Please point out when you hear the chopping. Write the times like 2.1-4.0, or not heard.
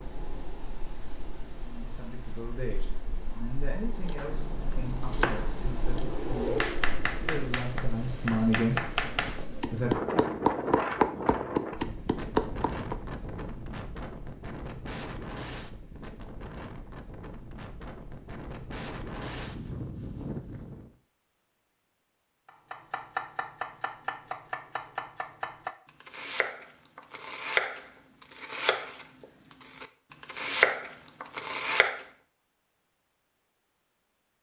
3.9-12.9, 22.4-32.0.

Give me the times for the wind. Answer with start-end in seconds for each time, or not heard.
0.0-20.9.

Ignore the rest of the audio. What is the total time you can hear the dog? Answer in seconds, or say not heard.
not heard.